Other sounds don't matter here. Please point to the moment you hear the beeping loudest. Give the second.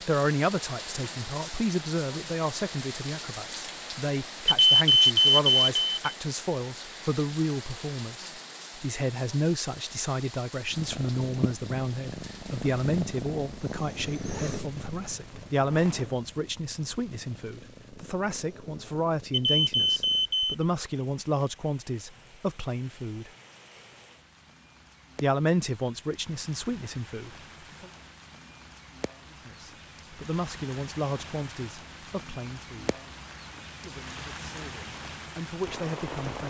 5 s.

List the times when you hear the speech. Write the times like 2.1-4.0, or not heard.
0.1-23.3, 25.2-27.9, 29.3-33.0, 33.8-36.4.